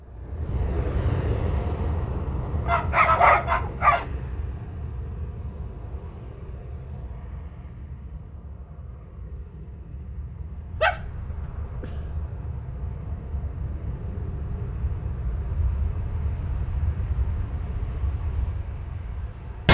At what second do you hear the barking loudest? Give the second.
3 s.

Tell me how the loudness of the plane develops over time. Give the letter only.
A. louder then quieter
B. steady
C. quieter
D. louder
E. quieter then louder
E.